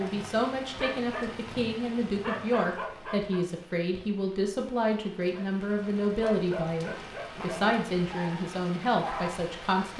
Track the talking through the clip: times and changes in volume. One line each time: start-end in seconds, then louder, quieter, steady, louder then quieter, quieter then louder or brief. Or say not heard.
0.0-9.9 steady.